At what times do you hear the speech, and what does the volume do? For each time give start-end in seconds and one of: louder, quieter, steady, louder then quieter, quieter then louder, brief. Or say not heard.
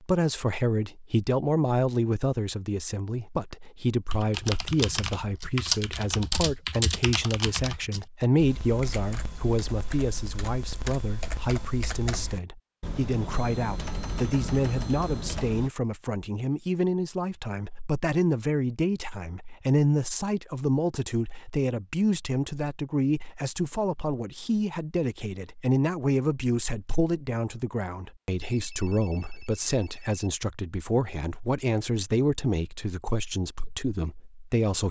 0.0-34.8 steady.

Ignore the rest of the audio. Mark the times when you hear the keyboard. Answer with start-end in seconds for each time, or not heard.
4.1-15.7.